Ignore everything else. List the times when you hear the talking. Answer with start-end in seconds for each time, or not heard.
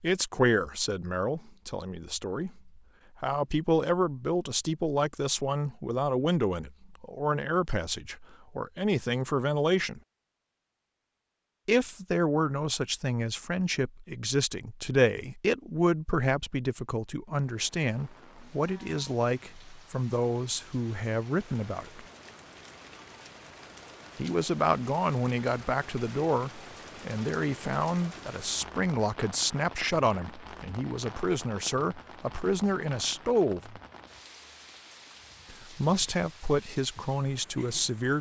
0.0-10.0, 11.7-22.1, 24.1-33.8, 35.5-38.1.